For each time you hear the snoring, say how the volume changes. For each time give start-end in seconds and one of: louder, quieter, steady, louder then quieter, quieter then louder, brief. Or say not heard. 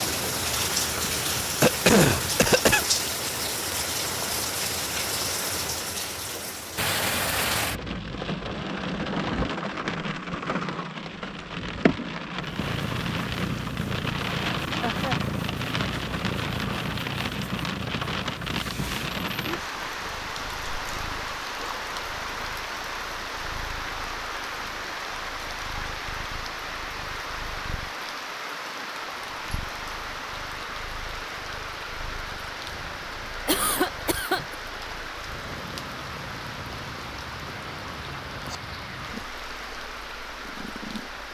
not heard.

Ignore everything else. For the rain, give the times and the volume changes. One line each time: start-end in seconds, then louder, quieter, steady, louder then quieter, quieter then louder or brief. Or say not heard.
0.0-41.2 quieter.